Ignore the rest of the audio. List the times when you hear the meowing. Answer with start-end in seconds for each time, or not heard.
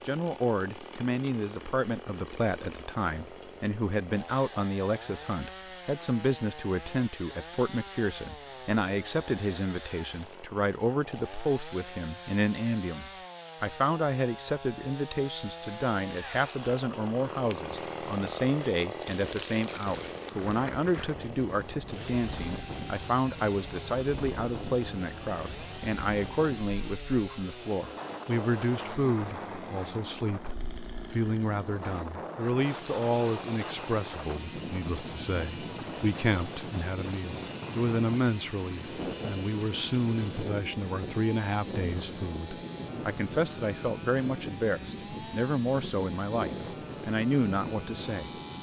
not heard.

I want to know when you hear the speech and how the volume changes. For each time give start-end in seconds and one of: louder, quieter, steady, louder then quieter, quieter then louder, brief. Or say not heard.
0.1-48.3 steady.